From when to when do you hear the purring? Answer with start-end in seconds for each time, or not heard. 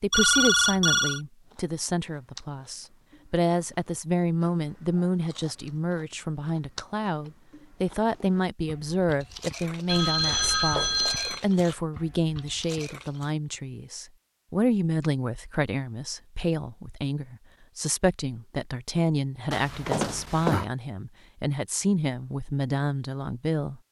not heard.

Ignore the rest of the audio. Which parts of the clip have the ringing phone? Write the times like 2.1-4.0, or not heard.
0.1-1.2, 9.8-11.4, 19.5-20.6.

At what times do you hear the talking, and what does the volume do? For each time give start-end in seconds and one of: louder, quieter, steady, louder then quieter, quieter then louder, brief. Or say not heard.
0.0-23.8 steady.